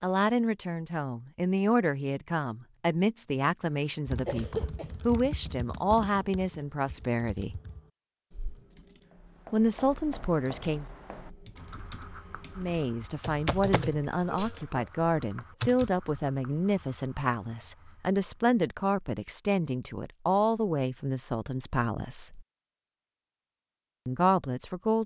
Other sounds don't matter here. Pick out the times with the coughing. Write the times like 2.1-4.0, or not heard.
4.2-4.9, 14.1-14.8.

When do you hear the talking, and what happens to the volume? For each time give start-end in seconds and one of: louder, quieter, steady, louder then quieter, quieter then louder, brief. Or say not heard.
0.0-7.6 steady
9.5-10.8 brief
12.6-22.4 steady
24.1-25.0 brief.